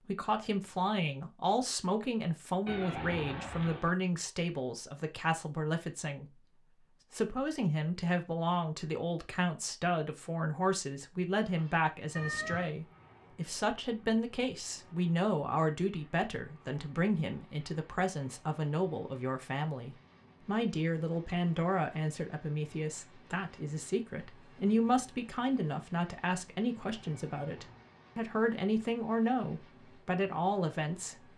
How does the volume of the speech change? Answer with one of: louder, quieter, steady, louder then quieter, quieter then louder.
steady.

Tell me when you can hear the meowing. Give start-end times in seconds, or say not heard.
2.6-4.0, 12.2-12.8, 26.8-27.9.